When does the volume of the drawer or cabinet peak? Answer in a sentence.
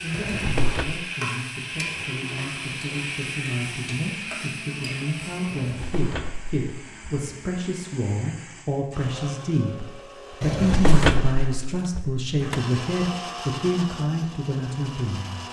The volume of the drawer or cabinet peaks at 11 seconds.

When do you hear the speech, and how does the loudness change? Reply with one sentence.
The speech can be heard from 0.0 to 15.4 s, getting louder.